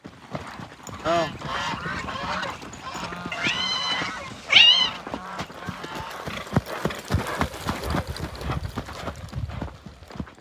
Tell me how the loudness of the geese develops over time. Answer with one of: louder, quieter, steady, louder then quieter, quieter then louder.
quieter.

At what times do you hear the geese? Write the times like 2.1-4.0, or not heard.
1.0-6.3.